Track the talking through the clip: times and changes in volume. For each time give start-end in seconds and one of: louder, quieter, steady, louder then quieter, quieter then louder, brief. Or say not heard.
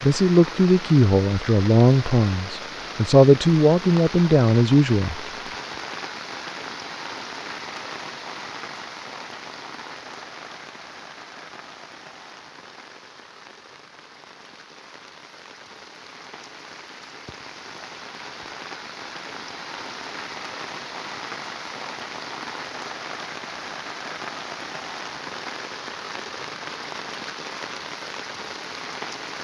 0.0-5.2 quieter then louder.